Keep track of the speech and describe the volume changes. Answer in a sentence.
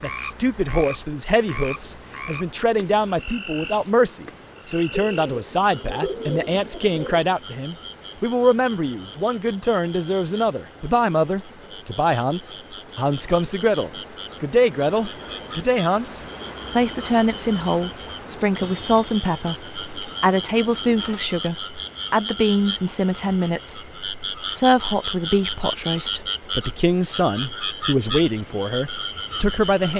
The loudness of the speech stays about the same.